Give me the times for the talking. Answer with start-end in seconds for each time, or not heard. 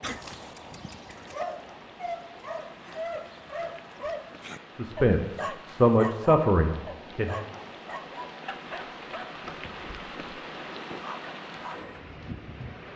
4.8-7.4.